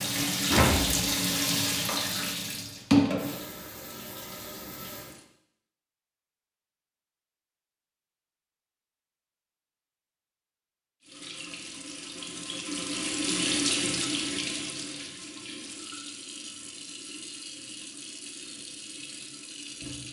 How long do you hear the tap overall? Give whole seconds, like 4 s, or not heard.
14 s.